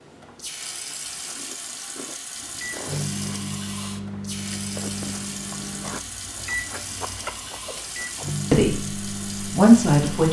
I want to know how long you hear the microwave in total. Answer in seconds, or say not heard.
8 s.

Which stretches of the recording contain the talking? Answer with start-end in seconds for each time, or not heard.
8.5-10.2.